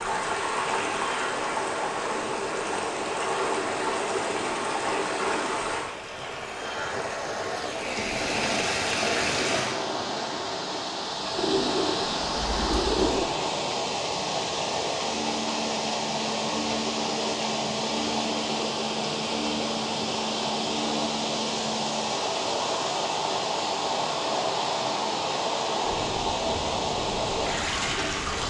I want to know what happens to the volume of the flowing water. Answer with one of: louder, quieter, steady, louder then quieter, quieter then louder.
steady.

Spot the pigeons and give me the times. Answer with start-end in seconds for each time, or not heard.
11.3-13.2.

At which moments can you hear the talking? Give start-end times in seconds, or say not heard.
not heard.